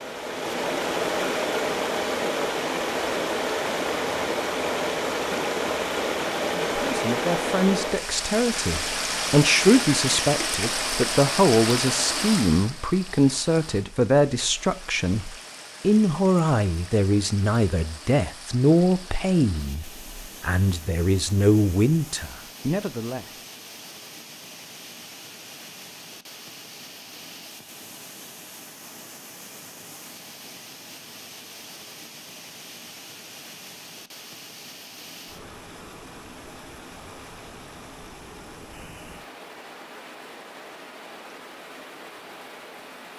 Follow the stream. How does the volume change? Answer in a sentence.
The loudness of the stream goes down.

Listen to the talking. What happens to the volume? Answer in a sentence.
The volume of the talking stays about the same.